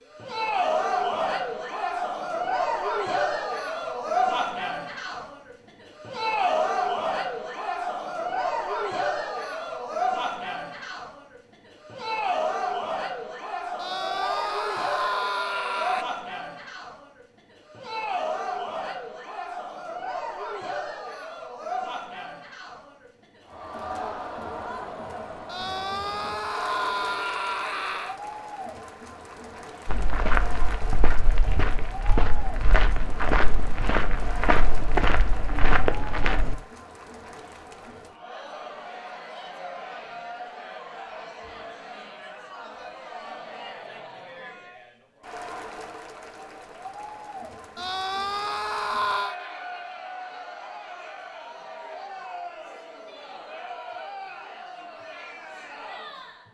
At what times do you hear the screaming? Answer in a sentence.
The screaming can be heard from 13.8 to 16.1 s, from 25.4 to 28.1 s and from 47.8 to 49.4 s.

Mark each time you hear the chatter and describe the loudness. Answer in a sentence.
You can hear the chatter from 0.1 to 56.4 s, getting quieter.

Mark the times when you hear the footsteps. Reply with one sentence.
The footsteps can be heard from 29.9 to 36.5 s.